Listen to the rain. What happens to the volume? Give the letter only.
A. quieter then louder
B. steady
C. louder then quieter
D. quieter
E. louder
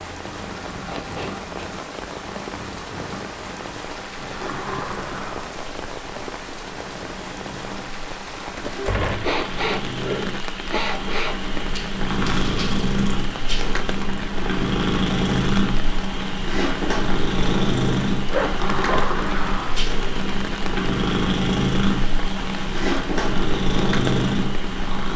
B.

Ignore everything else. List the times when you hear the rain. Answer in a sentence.
You can hear the rain from 0.0 to 25.1 s.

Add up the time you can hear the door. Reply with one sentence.
You can hear the door for 4 seconds altogether.